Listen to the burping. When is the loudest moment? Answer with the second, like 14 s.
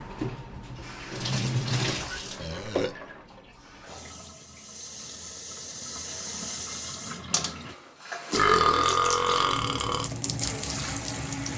9 s.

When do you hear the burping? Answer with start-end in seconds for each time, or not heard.
2.4-3.0, 8.3-10.1.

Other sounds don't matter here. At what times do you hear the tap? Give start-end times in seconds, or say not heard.
0.0-11.5.